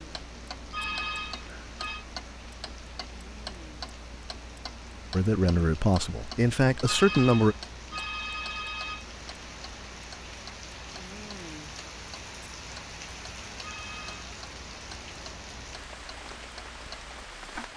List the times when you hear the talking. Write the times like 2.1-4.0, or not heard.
5.1-7.5.